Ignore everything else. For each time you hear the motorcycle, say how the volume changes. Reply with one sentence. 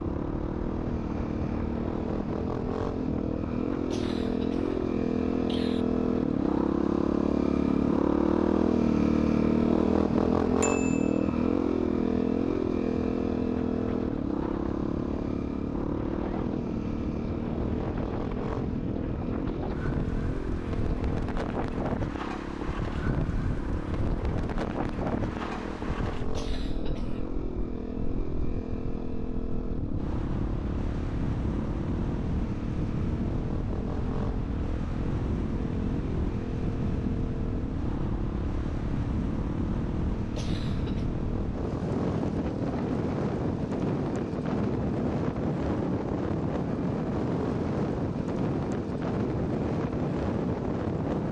You can hear the motorcycle from 0.0 to 51.2 s, getting quieter.